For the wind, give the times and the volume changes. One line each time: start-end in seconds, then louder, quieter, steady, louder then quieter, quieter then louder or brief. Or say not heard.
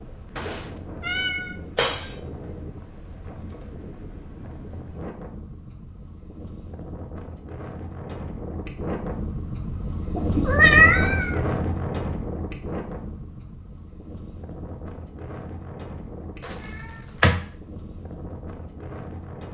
0.0-19.4 louder then quieter.